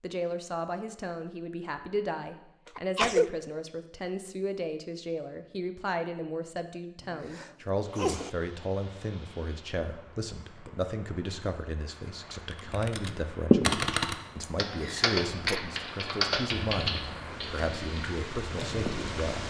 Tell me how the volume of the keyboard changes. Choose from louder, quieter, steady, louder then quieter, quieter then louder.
quieter.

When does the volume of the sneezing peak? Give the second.
3 s.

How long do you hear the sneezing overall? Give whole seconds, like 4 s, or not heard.
3 s.